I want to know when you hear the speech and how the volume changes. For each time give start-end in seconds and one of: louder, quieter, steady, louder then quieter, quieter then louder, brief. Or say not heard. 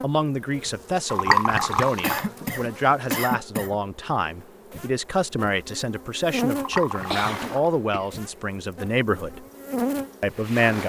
0.0-9.4 steady
10.2-10.8 brief.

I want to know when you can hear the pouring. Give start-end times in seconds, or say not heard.
1.1-2.2, 6.5-7.7.